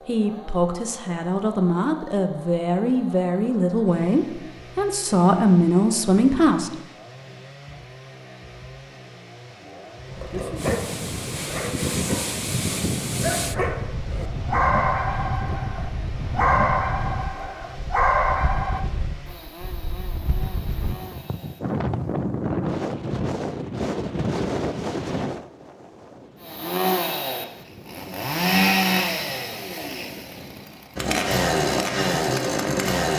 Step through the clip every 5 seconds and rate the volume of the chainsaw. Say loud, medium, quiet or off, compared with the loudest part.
quiet, quiet, quiet, quiet, quiet, loud, loud.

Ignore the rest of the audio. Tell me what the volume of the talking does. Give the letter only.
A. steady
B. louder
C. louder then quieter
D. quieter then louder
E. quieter
B.